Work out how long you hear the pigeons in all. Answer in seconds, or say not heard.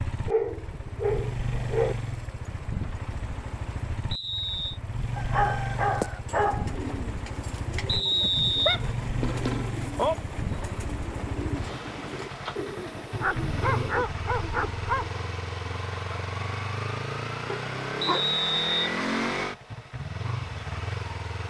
9 s.